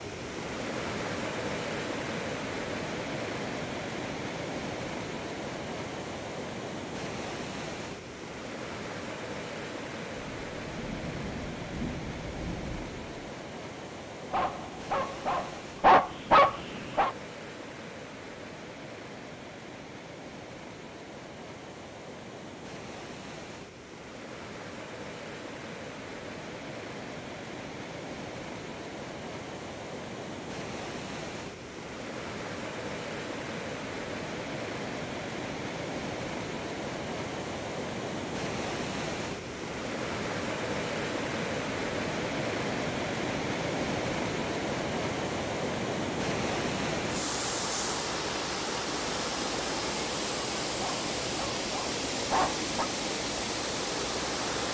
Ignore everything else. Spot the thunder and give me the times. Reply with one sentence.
The thunder can be heard from 10.4 to 13.3 s.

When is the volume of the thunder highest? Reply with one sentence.
The loudest moment of the thunder is at 12 seconds.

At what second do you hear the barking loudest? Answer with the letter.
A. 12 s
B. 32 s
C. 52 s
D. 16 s
D.